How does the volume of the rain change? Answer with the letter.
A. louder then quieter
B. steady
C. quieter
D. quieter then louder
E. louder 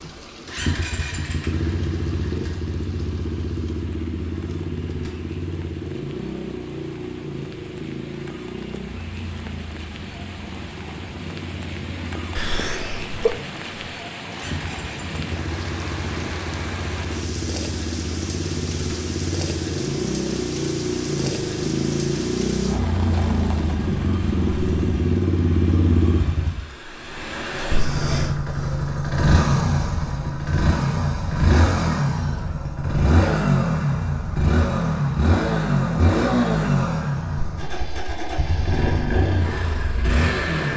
E.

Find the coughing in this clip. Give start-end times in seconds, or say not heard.
12.3-13.4.